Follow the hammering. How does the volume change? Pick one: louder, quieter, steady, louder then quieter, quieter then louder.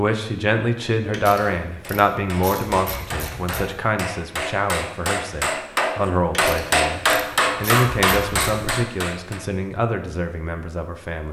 louder.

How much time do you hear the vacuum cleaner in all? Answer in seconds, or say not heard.
not heard.